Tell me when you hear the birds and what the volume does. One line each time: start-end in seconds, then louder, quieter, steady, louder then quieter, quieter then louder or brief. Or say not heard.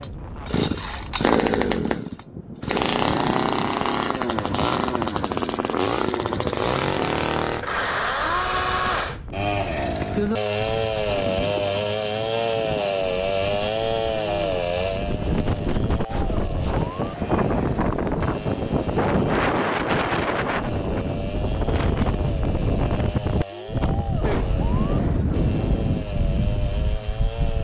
not heard.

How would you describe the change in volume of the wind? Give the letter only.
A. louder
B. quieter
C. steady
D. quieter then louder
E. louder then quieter
A.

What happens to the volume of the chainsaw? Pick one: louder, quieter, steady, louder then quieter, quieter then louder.
quieter.